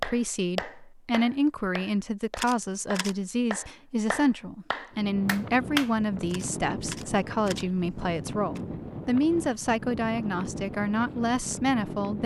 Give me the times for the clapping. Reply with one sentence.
You can hear the clapping from 0.0 to 5.9 s.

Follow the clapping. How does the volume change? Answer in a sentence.
The loudness of the clapping goes down, then up.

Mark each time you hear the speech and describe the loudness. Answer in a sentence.
You can hear the speech from 0.0 to 12.2 s, at a steady volume.